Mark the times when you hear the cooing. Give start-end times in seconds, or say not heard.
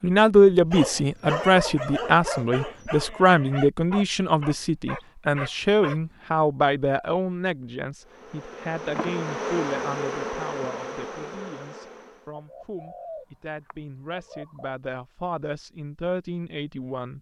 12.3-14.8.